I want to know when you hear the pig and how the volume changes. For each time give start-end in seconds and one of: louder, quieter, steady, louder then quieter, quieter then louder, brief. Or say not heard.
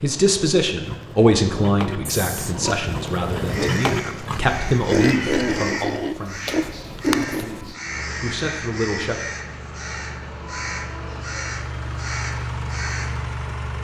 0.7-7.8 louder.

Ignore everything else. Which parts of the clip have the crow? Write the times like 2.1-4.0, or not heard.
3.5-13.3.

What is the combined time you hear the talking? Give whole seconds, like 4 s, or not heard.
9 s.